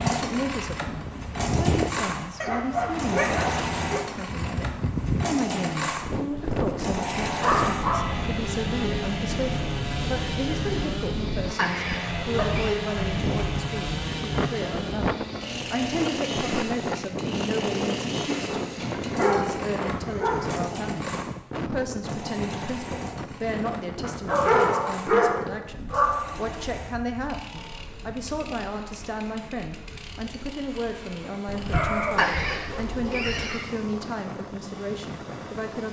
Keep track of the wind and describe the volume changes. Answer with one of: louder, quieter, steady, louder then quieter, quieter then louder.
quieter.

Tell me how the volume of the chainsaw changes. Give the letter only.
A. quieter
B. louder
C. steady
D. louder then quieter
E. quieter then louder
A.